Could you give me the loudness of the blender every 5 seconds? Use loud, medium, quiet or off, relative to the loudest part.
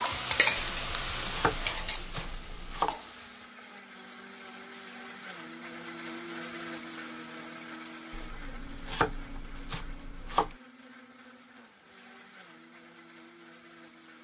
medium, loud, medium.